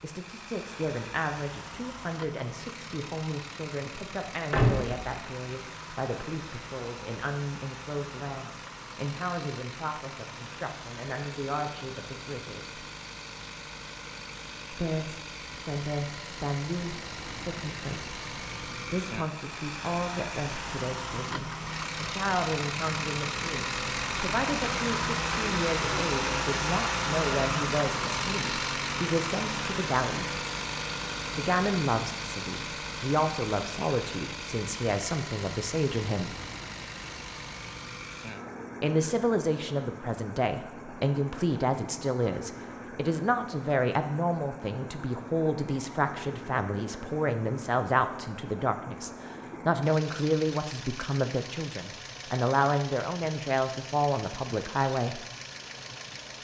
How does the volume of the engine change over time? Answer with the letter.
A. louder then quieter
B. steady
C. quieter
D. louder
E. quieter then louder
A.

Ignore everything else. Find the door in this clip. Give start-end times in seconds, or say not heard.
4.5-5.2.